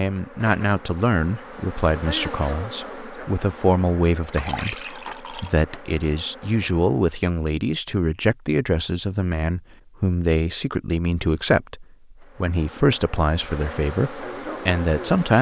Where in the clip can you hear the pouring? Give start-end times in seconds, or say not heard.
4.2-5.5.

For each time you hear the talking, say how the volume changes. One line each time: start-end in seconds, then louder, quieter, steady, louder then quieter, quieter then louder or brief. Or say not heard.
0.0-15.3 steady.